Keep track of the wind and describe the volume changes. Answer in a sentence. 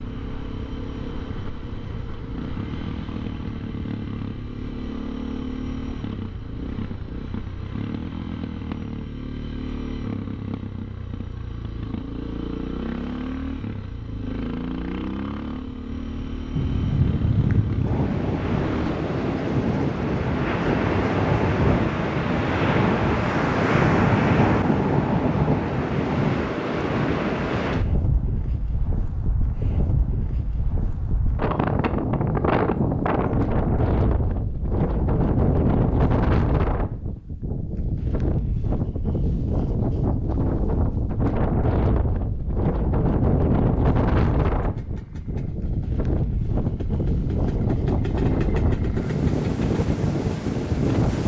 The volume of the wind stays about the same.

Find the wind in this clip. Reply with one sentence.
You can hear the wind from 16.5 to 51.2 s.